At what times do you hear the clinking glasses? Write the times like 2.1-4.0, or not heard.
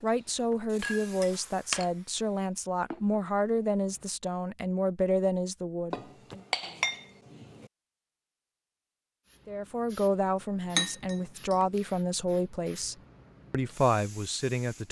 0.8-1.9, 5.9-7.7, 10.8-11.8.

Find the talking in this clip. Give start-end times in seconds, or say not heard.
0.0-6.4, 9.4-14.8.